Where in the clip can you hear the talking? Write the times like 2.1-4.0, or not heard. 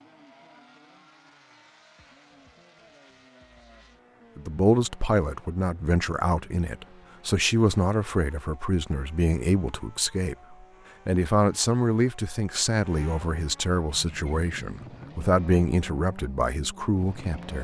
4.3-17.5.